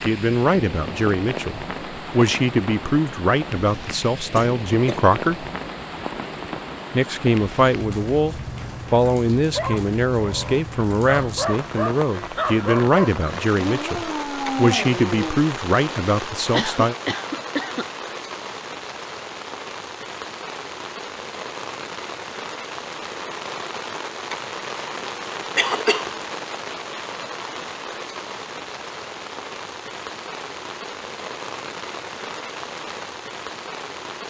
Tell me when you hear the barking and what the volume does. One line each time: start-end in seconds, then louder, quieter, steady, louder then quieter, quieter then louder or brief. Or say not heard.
9.6-15.4 louder.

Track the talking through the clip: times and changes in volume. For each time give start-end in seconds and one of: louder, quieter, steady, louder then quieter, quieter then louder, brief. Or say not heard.
0.0-5.5 steady
6.9-16.9 steady.